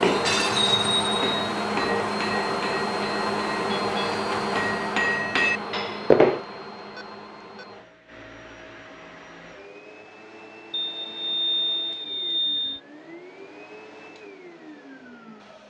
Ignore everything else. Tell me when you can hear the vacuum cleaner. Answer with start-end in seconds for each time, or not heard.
0.0-15.6.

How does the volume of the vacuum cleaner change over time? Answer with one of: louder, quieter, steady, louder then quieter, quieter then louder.
quieter.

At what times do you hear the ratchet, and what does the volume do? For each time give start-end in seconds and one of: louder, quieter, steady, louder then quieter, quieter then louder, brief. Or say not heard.
not heard.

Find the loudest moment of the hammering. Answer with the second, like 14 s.
6 s.